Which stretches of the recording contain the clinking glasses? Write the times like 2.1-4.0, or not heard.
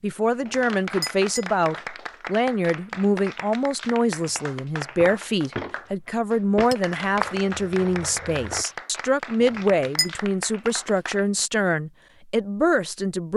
0.4-1.5, 6.7-7.2, 9.4-10.1.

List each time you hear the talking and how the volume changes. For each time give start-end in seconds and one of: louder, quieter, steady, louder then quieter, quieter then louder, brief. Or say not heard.
0.0-13.3 steady.